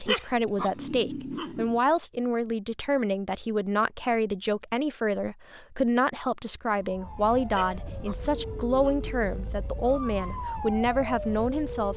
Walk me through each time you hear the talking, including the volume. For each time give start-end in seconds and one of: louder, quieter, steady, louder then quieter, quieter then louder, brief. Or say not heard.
0.0-11.9 steady.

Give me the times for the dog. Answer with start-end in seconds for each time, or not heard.
0.1-1.8, 7.5-9.2.